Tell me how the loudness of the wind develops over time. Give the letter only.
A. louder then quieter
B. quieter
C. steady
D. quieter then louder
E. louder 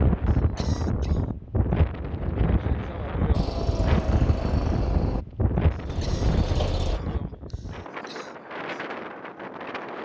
B.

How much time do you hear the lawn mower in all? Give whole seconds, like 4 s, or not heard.
4 s.